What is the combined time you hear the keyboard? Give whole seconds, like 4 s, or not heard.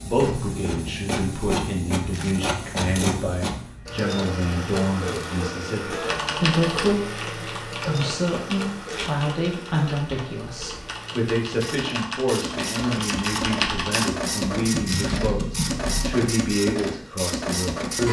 10 s.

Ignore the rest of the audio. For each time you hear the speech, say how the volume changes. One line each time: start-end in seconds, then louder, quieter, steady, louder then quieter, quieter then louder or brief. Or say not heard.
0.0-18.0 steady.